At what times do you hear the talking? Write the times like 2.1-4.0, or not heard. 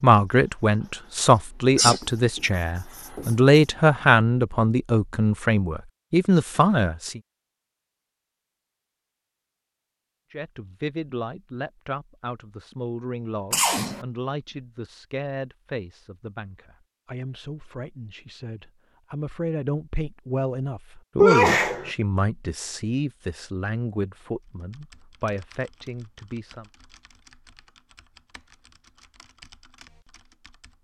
0.0-7.2, 10.3-26.7.